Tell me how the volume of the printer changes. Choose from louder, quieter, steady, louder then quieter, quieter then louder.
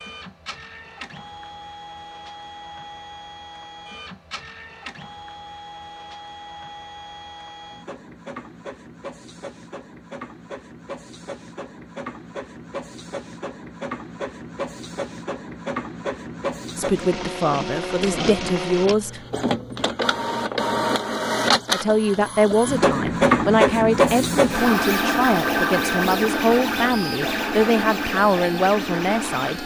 louder.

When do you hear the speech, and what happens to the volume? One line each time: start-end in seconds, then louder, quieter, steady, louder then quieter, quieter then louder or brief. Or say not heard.
16.8-19.2 brief
21.7-29.6 steady.